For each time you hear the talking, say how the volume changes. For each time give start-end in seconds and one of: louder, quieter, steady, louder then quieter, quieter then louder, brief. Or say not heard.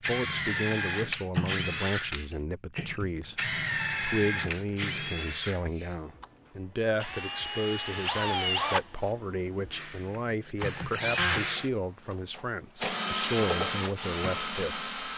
0.1-14.8 steady.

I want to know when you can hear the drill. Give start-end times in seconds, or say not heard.
0.0-15.1.